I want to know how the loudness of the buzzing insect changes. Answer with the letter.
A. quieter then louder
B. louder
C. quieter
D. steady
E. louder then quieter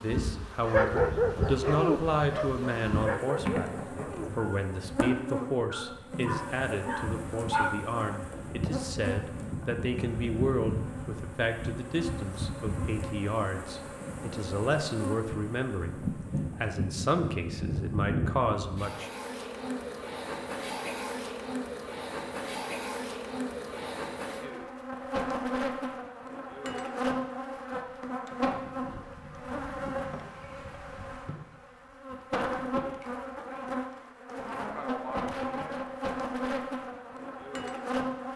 D.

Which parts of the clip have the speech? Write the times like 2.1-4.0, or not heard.
0.0-3.7, 4.3-19.1.